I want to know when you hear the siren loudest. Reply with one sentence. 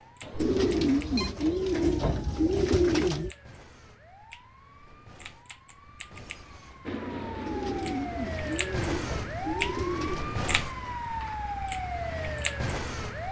The loudest moment of the siren is at 10 seconds.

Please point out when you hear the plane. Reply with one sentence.
You can hear the plane from 6.8 to 8.3 s.